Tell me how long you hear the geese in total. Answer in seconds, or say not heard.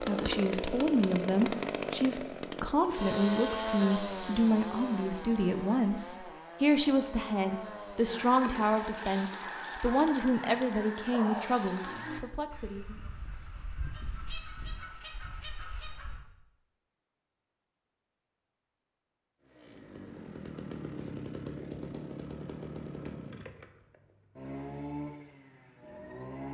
8 s.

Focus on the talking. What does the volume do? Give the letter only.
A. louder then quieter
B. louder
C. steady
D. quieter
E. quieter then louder
C.